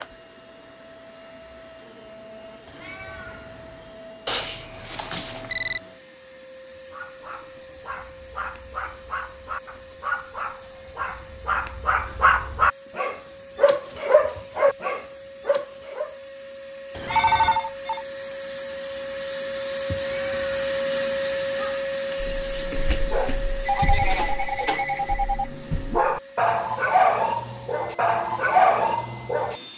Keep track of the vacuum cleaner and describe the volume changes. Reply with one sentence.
The loudness of the vacuum cleaner goes up, then down.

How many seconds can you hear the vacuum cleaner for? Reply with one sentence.
The vacuum cleaner can be heard for 30 seconds in total.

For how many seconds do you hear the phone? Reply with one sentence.
You can hear the phone for 4 seconds altogether.